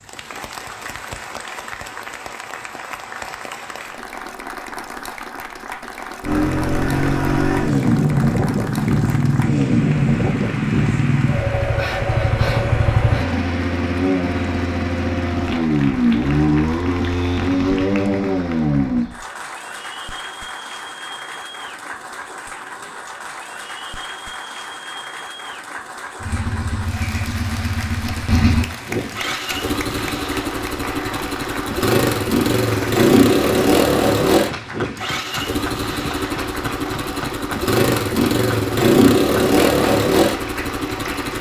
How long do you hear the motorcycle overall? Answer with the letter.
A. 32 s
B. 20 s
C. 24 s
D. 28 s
D.